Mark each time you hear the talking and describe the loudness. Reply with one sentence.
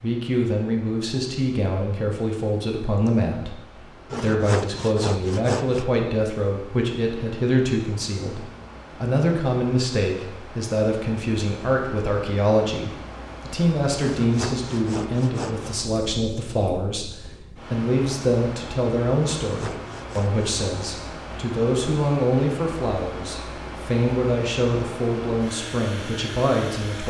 You can hear the talking from 0.0 to 27.0 s, at a steady volume.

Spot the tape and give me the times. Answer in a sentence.
The tape can't be heard in this clip.